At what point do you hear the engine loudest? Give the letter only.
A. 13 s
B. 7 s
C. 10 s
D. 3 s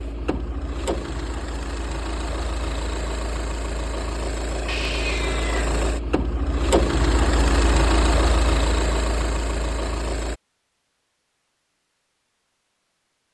B.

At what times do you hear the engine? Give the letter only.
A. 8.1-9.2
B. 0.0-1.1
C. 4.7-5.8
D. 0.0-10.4
D.